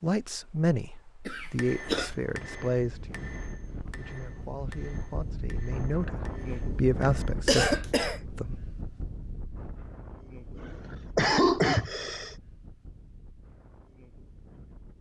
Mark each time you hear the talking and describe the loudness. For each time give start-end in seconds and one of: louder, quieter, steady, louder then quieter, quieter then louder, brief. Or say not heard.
0.0-8.6 quieter then louder.